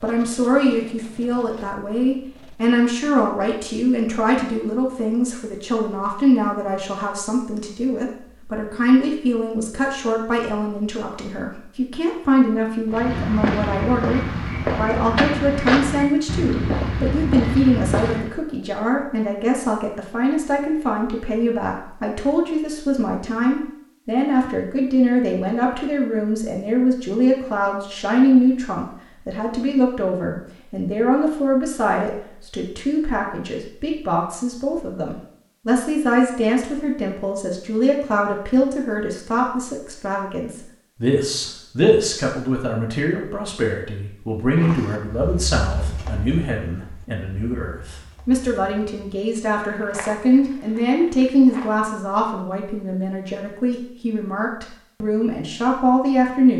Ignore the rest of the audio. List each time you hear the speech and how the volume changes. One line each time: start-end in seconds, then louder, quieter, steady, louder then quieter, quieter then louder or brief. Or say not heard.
0.0-56.5 steady.